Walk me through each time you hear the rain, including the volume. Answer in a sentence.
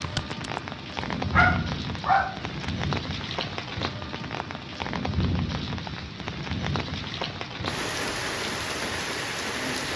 The rain can be heard from 0.0 to 9.9 s, at a steady volume.